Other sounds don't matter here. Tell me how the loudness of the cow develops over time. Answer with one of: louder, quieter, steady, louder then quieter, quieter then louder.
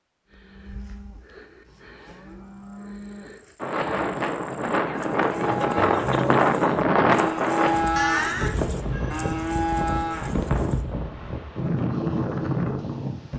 louder.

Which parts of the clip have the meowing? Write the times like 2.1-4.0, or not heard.
8.0-9.4.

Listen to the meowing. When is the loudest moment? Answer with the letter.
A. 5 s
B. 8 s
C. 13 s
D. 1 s
B.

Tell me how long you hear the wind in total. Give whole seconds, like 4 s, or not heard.
10 s.